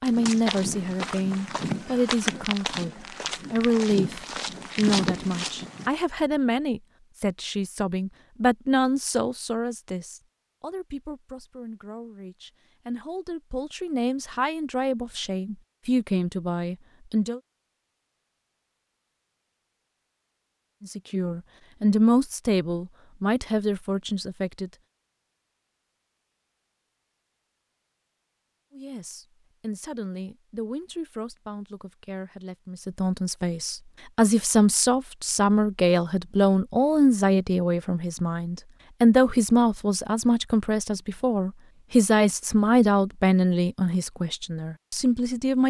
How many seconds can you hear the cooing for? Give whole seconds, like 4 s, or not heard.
not heard.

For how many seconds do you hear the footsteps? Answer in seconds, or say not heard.
6 s.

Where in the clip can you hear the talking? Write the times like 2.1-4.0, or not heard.
0.0-17.4, 20.8-24.7, 28.7-45.6.